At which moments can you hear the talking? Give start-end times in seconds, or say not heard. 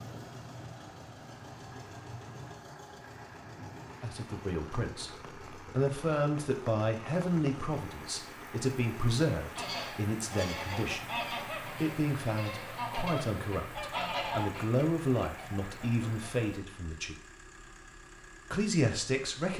4.0-17.1, 18.5-19.5.